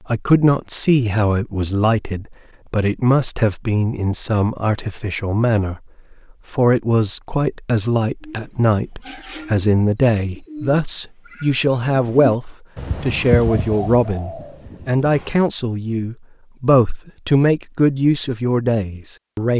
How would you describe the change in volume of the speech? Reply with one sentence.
The loudness of the speech stays about the same.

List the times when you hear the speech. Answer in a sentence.
The speech can be heard from 0.1 to 5.8 s and from 6.5 to 19.5 s.